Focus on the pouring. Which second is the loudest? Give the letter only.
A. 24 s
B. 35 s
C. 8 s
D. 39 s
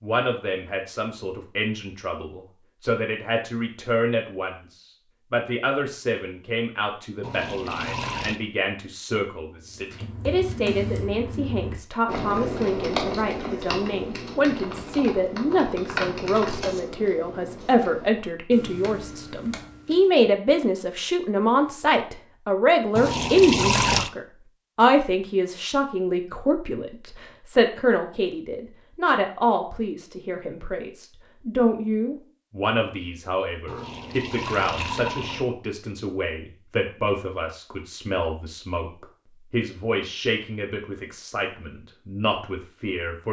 A.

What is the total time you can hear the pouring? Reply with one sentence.
You can hear the pouring for 4 seconds altogether.